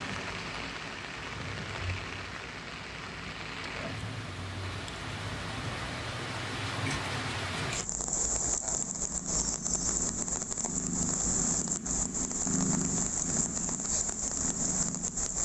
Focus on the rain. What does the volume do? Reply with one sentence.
The loudness of the rain goes up.